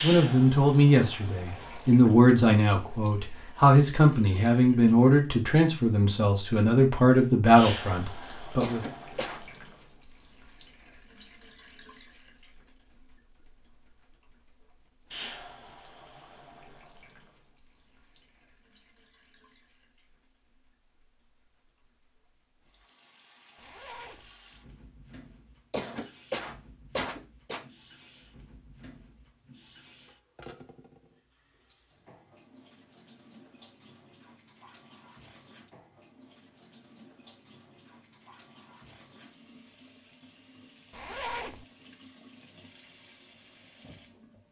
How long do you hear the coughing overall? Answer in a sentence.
The coughing can be heard for 3 seconds in total.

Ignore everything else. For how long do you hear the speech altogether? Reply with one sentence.
The speech can be heard for 9 seconds in total.